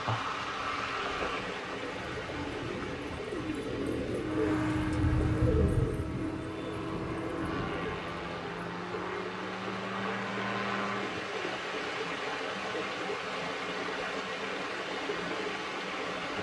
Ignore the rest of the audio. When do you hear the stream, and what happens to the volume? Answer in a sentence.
The stream can be heard from 0.0 to 16.3 s, getting quieter then louder.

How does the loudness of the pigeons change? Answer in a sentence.
The volume of the pigeons goes up, then down.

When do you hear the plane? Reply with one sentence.
You can hear the plane from 4.2 to 11.2 s.